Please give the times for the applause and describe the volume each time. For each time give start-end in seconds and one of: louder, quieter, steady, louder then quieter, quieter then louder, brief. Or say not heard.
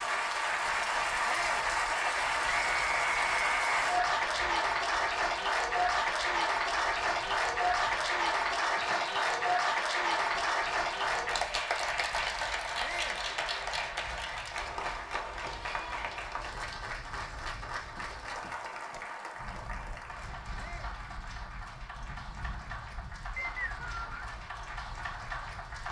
0.0-25.8 quieter.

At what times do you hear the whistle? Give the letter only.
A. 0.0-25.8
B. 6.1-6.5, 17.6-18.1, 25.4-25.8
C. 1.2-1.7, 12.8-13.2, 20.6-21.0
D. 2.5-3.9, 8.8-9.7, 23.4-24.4
D.